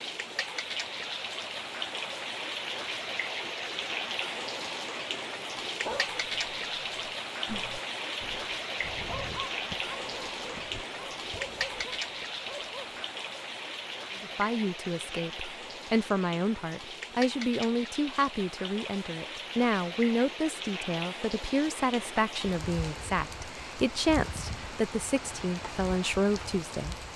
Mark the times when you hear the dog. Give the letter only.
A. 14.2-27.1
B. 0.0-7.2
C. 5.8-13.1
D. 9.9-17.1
C.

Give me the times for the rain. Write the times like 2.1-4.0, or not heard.
0.0-27.1.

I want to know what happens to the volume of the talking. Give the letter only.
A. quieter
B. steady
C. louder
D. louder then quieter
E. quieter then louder
B.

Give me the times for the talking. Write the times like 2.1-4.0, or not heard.
14.2-27.1.